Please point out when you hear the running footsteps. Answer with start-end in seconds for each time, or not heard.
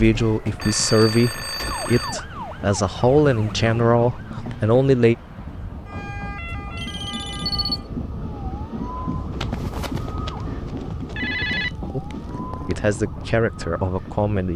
9.1-11.3.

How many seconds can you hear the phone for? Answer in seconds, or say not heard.
5 s.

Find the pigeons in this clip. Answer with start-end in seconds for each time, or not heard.
not heard.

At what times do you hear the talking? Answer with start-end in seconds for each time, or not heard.
0.0-5.2, 11.9-14.5.